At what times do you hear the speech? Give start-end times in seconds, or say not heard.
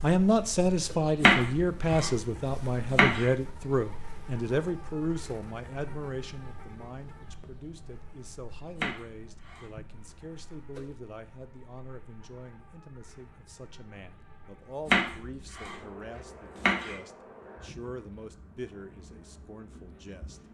0.0-20.4.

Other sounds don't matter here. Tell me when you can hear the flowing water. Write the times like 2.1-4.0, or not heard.
not heard.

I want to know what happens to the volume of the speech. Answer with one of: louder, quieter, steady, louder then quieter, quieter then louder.
quieter.